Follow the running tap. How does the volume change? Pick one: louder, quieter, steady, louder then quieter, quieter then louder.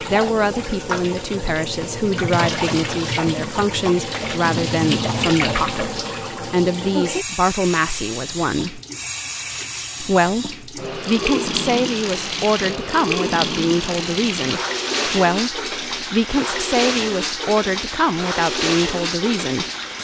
steady.